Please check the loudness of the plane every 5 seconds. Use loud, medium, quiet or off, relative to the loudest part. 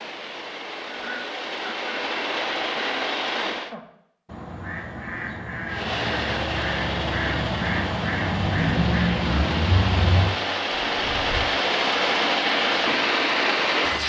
medium, medium, loud.